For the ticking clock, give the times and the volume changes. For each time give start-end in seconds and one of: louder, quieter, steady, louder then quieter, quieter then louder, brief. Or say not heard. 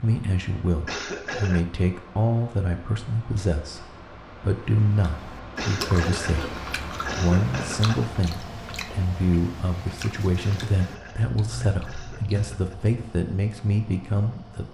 not heard.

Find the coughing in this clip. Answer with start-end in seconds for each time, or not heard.
0.8-1.6, 5.5-8.2, 10.6-12.8.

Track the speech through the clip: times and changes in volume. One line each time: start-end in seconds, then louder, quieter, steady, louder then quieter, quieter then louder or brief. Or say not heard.
0.0-14.7 steady.